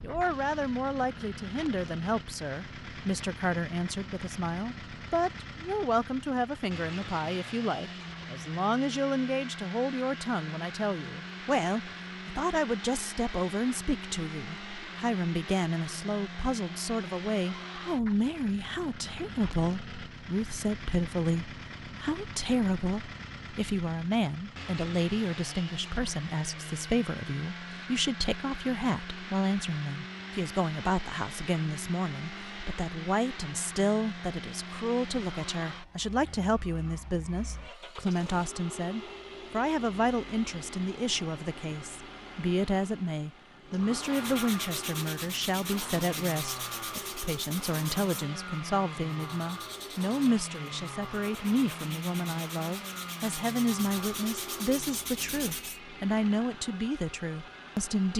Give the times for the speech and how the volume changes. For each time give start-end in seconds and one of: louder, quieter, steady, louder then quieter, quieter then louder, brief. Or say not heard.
0.0-58.1 steady.